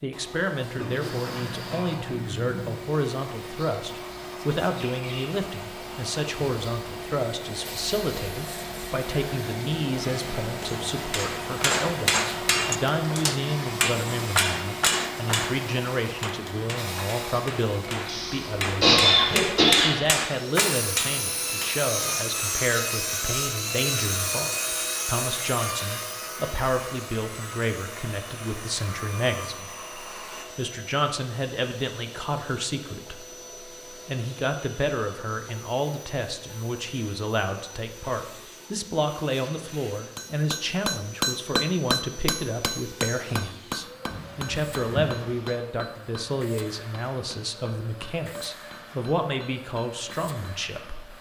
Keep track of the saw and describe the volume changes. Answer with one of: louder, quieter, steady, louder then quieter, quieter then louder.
quieter.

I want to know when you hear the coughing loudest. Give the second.
19 s.